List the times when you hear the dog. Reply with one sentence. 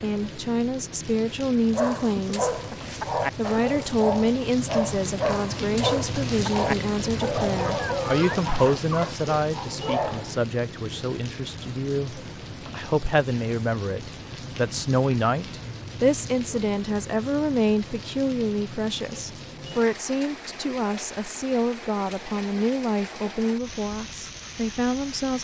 The dog can be heard from 1.7 to 10.3 s.